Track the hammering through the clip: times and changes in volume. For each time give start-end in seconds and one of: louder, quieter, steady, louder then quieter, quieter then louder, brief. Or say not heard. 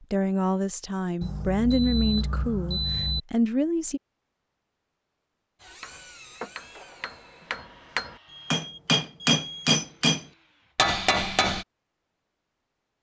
5.8-11.7 louder.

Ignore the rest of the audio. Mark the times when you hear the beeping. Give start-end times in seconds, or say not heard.
1.2-3.2, 8.2-9.8.